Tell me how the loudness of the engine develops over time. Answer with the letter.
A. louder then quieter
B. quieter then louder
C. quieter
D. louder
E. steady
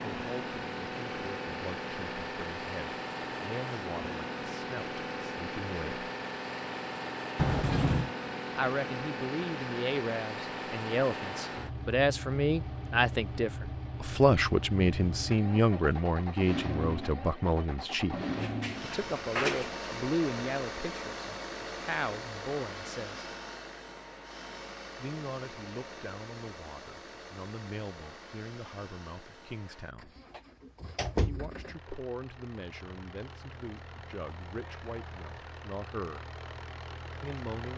C.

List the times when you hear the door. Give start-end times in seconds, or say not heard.
7.3-8.1, 18.1-19.9, 30.1-31.9.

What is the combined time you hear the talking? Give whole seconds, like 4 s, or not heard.
31 s.